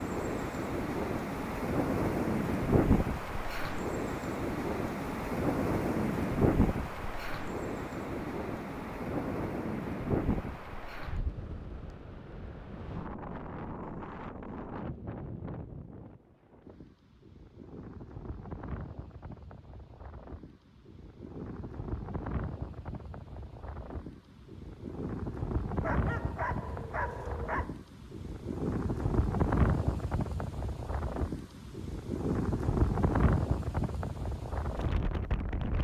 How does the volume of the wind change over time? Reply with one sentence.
The volume of the wind goes down, then up.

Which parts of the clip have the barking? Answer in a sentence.
You can hear the barking from 25.8 to 27.8 s.